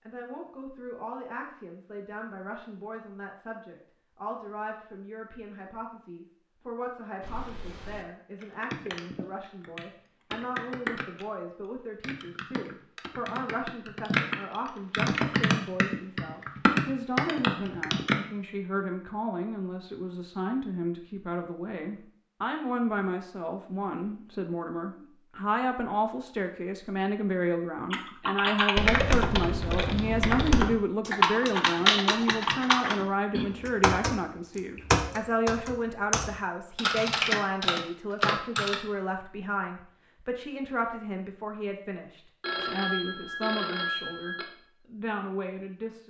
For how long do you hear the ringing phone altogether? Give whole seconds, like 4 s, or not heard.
2 s.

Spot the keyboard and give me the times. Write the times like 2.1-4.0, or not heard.
7.2-11.2, 12.0-18.1, 27.9-38.8.